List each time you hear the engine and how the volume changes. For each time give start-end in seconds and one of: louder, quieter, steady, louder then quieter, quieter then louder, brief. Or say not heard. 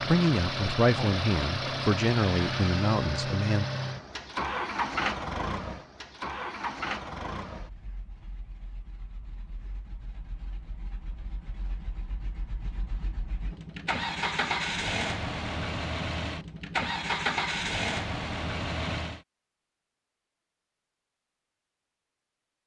0.0-19.2 quieter then louder.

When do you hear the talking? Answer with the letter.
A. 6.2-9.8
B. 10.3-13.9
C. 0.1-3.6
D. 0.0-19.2
C.